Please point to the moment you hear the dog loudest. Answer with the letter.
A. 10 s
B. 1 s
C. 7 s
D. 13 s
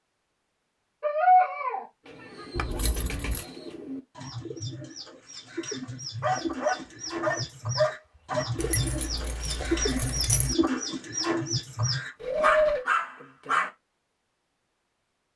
B.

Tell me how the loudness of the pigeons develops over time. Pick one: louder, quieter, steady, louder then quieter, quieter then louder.
louder.